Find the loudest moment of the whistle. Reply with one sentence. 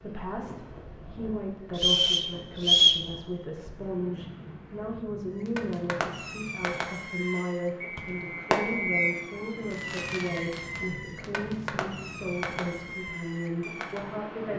The volume of the whistle peaks at 3 seconds.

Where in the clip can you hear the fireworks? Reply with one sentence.
You can hear the fireworks from 5.4 to 14.1 s.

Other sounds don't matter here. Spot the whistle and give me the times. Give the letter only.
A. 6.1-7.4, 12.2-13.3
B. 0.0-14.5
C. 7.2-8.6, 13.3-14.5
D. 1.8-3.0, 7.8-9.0
D.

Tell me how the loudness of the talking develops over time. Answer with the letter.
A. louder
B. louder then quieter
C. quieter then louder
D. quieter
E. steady
E.